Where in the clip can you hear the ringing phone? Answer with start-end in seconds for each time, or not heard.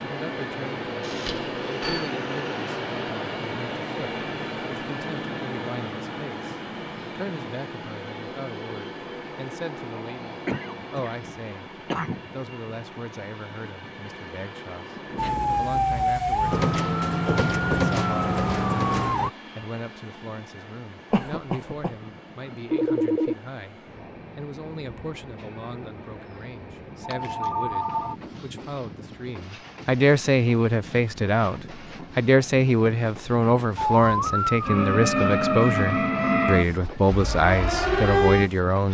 1.0-2.1, 22.7-23.4, 27.0-28.1.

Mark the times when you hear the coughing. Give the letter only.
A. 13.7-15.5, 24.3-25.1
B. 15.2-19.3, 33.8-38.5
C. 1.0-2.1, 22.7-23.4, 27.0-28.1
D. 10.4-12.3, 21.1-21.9
D.